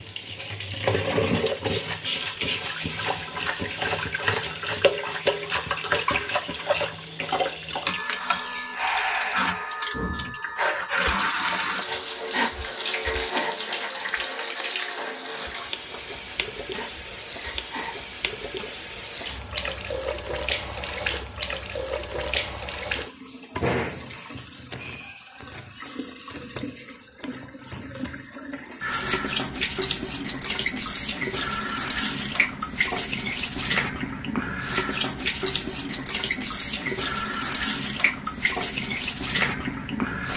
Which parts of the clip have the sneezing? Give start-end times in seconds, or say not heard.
not heard.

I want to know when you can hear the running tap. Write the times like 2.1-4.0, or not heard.
0.0-40.3.